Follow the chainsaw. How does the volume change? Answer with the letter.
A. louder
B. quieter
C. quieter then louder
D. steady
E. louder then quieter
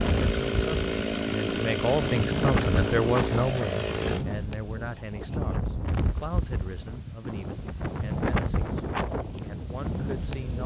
D.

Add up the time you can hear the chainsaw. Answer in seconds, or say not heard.
4 s.